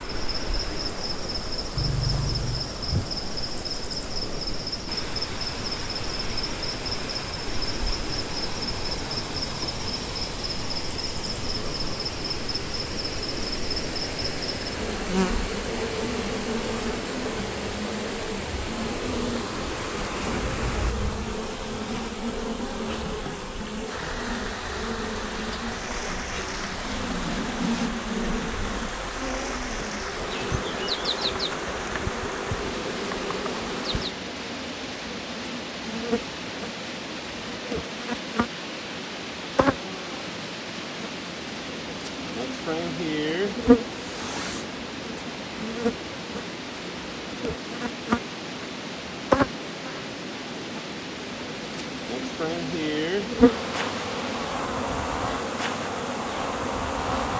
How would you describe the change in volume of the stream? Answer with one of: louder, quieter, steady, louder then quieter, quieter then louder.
steady.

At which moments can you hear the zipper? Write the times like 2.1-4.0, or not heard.
1.8-2.7, 20.4-21.4, 44.0-44.8.